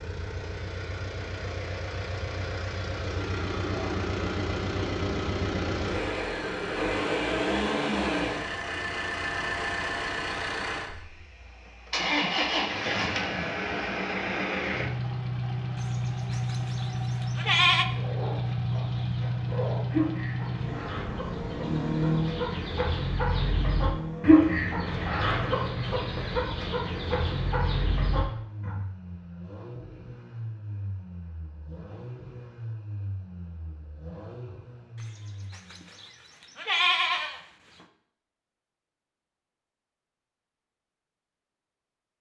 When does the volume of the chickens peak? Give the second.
24 s.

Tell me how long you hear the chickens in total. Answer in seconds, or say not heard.
11 s.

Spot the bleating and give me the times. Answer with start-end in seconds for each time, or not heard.
15.8-17.9, 35.0-37.4.